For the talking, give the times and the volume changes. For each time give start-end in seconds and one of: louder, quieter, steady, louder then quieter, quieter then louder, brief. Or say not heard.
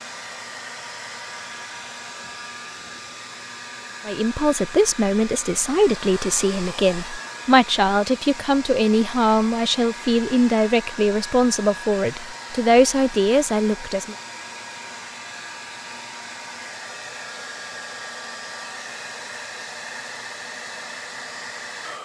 4.0-14.2 steady.